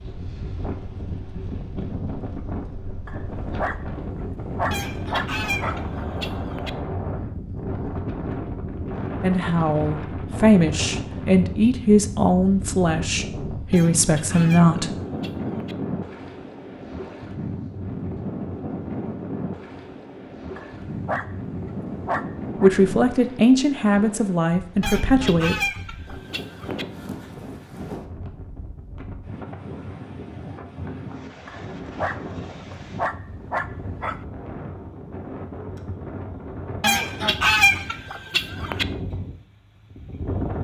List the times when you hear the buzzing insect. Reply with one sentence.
The buzzing insect can't be heard in this clip.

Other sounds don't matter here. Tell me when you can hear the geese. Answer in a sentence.
The geese can be heard from 4.7 to 6.7 s, from 13.7 to 15.8 s, from 24.8 to 26.9 s and from 36.8 to 38.9 s.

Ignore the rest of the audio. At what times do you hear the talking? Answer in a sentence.
The talking can be heard from 9.2 to 14.9 s and from 22.6 to 25.6 s.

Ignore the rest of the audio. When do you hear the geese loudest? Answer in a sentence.
The loudest moment of the geese is at 38 seconds.